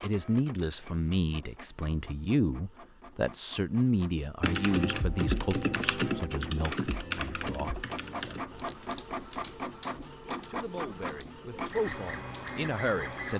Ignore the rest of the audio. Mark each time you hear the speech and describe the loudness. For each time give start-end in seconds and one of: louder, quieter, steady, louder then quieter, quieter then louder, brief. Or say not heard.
0.0-8.7 quieter
10.4-13.3 brief.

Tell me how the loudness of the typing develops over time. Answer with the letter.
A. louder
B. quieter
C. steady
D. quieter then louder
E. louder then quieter
B.